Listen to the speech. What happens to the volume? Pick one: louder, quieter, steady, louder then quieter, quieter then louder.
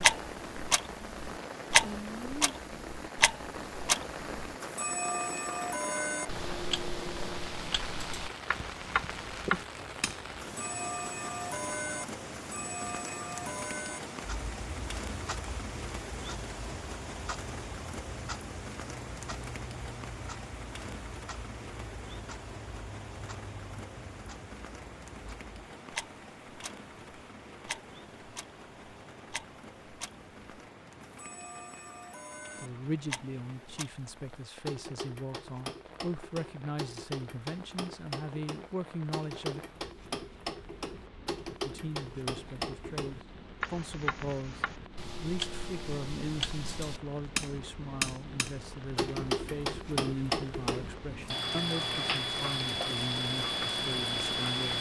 steady.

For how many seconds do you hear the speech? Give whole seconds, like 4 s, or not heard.
20 s.